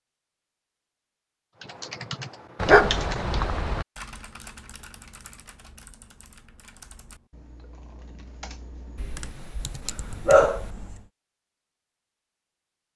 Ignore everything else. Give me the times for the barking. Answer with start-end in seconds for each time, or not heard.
2.6-3.9, 8.9-10.7.